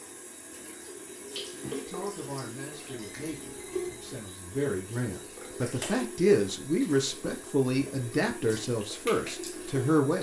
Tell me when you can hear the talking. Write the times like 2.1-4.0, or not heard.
1.7-10.1.